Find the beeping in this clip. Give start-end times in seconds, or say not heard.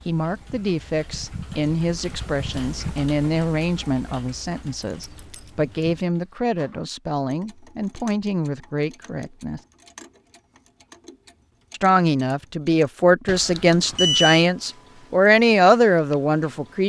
13.2-14.4.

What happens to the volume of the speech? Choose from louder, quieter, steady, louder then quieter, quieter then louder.
louder.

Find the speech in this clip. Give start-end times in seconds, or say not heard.
0.1-9.6, 11.7-16.8.